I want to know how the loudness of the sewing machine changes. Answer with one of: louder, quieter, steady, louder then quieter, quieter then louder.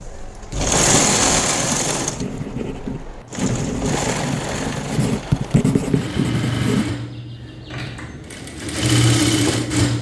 quieter then louder.